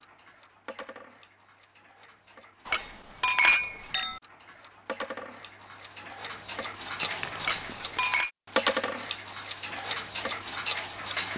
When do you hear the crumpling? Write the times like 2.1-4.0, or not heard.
7.0-8.0.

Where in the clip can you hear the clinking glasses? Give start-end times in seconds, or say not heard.
2.6-4.2, 7.4-8.3.